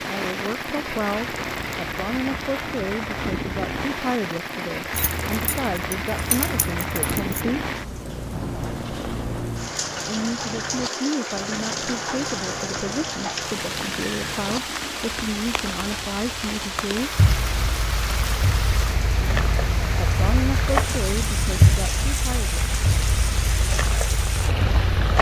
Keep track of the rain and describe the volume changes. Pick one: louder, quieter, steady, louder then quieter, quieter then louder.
steady.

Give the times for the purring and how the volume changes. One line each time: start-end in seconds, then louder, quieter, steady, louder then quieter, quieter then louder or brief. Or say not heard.
7.8-25.1 louder.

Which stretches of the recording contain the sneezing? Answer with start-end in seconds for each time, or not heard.
not heard.